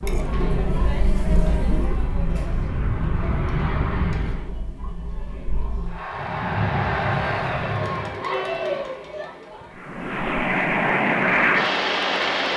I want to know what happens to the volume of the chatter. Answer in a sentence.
The loudness of the chatter goes down, then up.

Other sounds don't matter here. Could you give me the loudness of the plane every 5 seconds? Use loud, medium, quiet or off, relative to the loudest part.
medium, medium, loud.